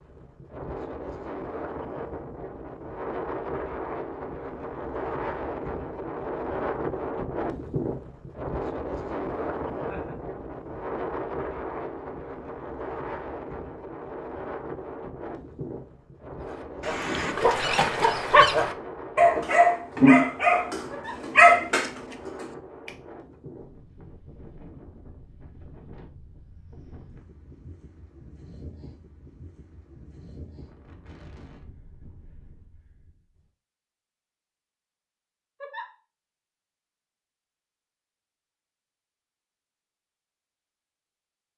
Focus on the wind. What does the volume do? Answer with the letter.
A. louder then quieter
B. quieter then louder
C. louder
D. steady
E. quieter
E.